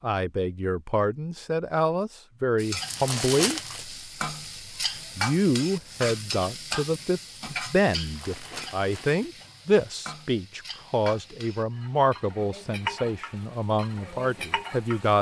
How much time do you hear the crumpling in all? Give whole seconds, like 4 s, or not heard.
3 s.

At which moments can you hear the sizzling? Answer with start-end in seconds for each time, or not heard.
2.5-15.1.